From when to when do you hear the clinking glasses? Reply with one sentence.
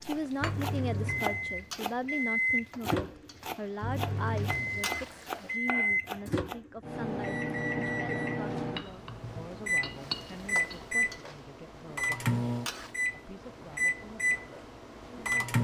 The clinking glasses can be heard from 8.8 to 10.9 s.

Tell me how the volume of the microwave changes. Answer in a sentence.
The loudness of the microwave stays about the same.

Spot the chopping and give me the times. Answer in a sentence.
You can hear the chopping from 0.1 to 6.6 s.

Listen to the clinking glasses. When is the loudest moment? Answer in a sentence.
The loudest moment of the clinking glasses is at 10 seconds.